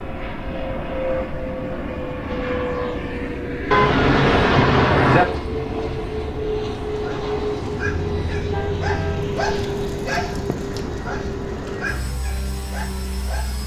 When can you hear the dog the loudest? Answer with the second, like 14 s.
10 s.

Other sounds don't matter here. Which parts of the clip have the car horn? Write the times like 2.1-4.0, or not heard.
3.7-5.2, 8.1-9.3.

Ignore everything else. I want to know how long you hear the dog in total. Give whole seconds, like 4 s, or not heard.
7 s.